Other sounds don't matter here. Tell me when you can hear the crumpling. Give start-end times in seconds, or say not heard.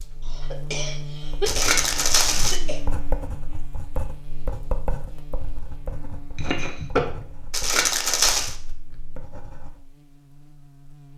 1.4-2.6, 7.5-8.6.